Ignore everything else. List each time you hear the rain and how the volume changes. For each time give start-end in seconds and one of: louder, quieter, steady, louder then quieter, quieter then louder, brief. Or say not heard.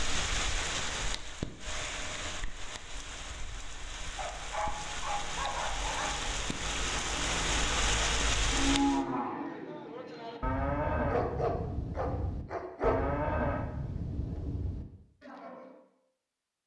0.0-9.0 quieter then louder.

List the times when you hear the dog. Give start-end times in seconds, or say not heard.
4.2-6.2, 11.1-13.0.